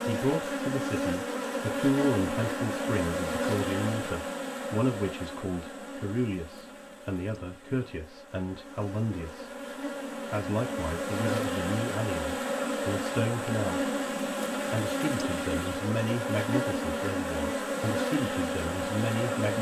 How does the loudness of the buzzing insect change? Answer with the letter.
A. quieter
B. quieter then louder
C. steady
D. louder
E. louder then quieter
B.